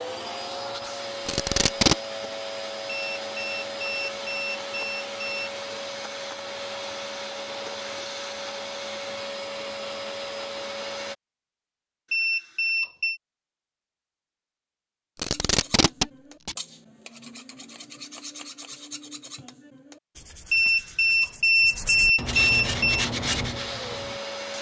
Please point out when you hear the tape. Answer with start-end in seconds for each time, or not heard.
1.2-1.9, 15.2-16.6.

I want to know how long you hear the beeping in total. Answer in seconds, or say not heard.
6 s.